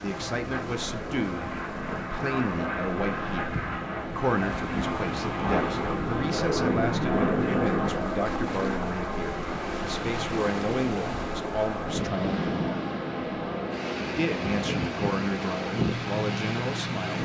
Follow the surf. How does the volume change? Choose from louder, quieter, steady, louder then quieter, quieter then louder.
louder.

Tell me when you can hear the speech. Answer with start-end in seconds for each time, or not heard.
0.0-12.5, 14.2-17.2.